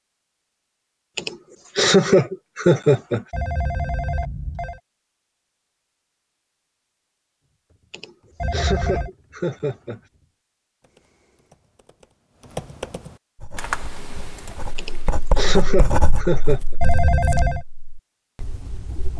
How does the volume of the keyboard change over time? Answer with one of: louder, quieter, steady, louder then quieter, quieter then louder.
louder.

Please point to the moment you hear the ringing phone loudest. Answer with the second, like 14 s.
17 s.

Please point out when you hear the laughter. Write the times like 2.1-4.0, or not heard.
1.1-3.2, 7.9-10.0, 14.8-16.8.